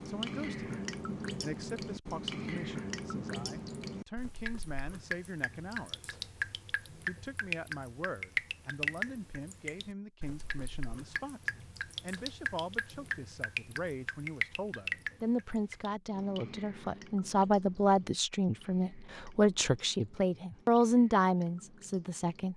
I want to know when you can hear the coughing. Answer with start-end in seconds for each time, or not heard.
not heard.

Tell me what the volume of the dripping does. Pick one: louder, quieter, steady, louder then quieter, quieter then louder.
quieter.